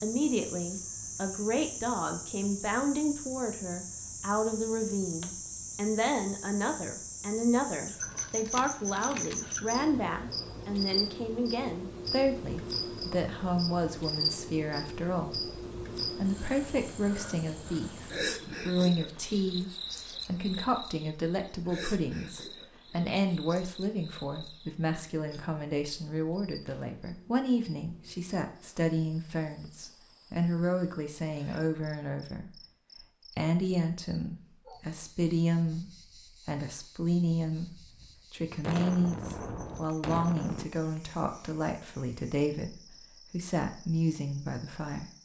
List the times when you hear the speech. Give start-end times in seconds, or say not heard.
0.0-45.0.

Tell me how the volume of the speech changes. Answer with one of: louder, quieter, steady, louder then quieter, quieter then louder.
steady.